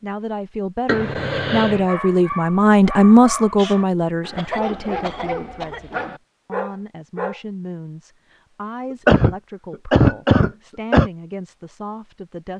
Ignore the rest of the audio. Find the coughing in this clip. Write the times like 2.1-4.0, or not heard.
0.8-1.9, 4.3-5.9, 9.1-11.1.